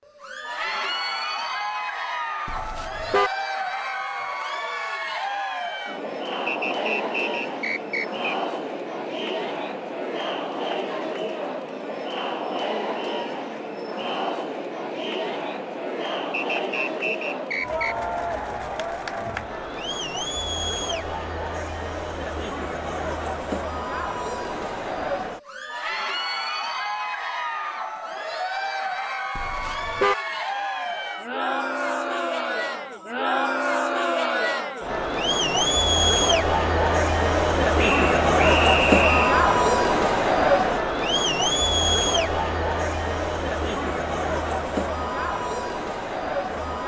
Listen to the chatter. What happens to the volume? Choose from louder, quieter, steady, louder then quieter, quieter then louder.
louder.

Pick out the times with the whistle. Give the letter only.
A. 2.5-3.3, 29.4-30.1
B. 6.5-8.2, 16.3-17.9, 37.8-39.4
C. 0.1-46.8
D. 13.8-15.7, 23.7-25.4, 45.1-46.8
B.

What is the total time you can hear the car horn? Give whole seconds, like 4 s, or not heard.
2 s.